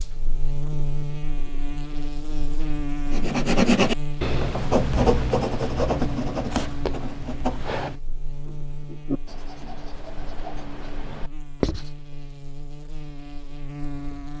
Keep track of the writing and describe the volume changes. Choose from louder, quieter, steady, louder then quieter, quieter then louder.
quieter.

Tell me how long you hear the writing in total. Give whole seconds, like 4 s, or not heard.
9 s.